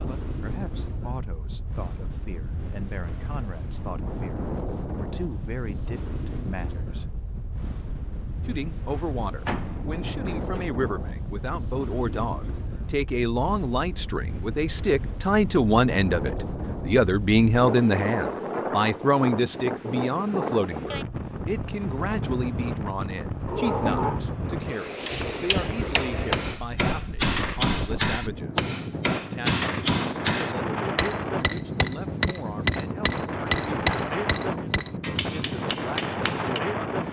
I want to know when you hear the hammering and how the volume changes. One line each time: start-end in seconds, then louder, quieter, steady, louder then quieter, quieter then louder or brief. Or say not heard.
25.1-36.6 quieter.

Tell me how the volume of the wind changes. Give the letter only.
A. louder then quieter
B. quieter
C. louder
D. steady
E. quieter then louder
C.